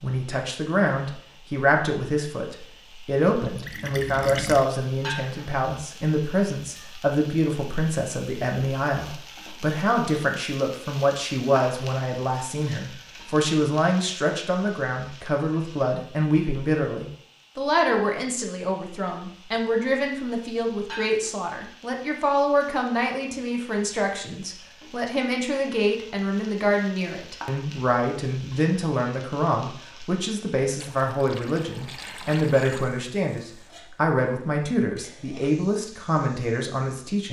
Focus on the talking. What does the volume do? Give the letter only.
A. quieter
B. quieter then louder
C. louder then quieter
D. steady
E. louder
D.